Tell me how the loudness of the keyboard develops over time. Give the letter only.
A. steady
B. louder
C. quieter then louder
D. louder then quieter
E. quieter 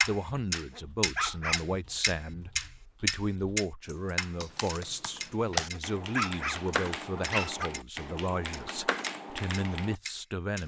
B.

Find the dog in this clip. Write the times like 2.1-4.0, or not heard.
0.5-1.8, 5.5-7.7.